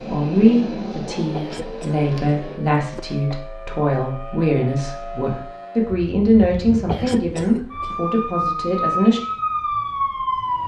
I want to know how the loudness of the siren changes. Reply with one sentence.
The loudness of the siren goes up.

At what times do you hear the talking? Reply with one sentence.
The talking can be heard from 0.0 to 9.2 s.